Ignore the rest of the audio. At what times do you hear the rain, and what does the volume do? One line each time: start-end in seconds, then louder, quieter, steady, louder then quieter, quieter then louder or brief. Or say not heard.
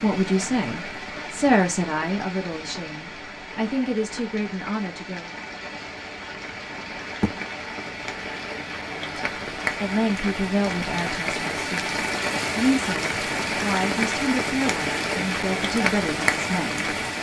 0.0-17.1 louder.